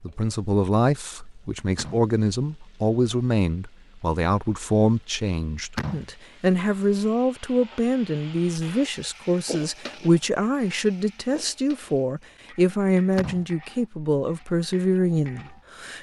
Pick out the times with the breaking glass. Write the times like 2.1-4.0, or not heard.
not heard.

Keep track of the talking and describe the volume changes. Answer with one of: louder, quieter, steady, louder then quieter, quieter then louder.
steady.